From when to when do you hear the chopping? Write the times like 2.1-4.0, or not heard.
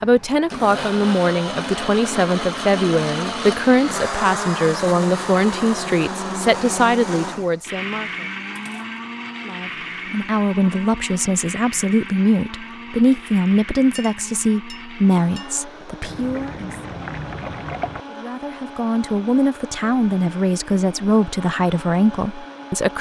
not heard.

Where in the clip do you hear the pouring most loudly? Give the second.
18 s.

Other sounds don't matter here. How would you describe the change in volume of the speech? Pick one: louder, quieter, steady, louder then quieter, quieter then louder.
steady.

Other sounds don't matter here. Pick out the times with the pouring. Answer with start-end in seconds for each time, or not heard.
16.0-18.1.